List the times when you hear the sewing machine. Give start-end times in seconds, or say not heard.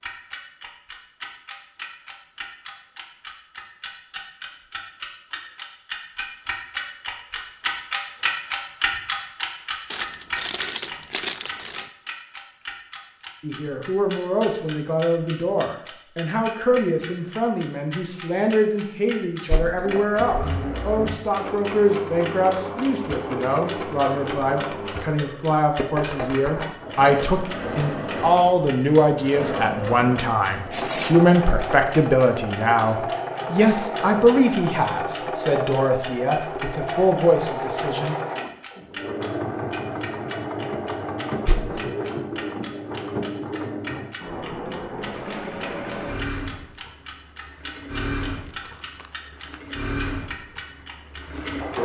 19.8-51.8.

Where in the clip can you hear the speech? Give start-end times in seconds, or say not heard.
13.4-38.1.